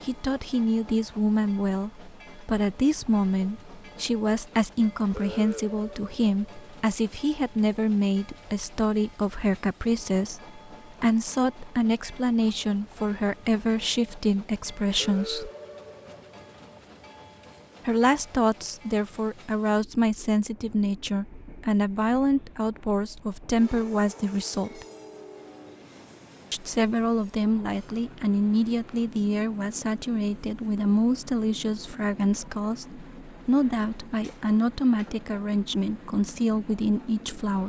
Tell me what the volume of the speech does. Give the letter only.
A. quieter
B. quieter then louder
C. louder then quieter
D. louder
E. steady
E.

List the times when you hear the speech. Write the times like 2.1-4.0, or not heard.
0.0-15.5, 17.9-24.9, 26.5-37.6.